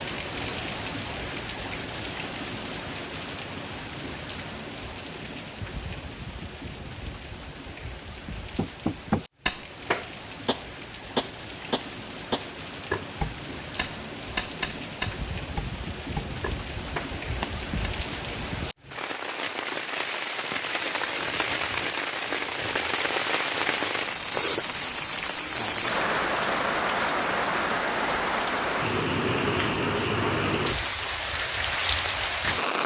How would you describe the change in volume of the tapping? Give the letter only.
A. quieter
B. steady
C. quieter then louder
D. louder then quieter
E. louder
A.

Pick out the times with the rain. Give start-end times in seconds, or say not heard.
0.0-32.8.